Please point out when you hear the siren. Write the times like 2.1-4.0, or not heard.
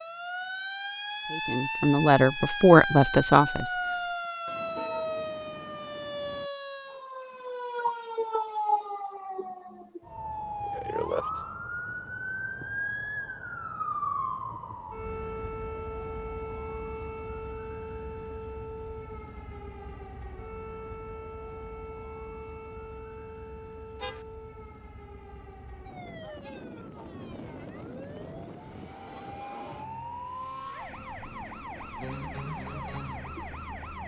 0.0-34.0.